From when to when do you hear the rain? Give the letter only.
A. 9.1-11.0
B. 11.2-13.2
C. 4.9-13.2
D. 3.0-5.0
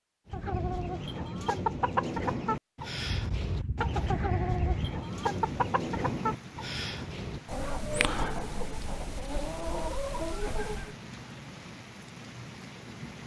C.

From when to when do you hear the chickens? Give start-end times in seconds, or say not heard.
0.2-10.9.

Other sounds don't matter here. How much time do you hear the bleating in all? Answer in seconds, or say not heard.
2 s.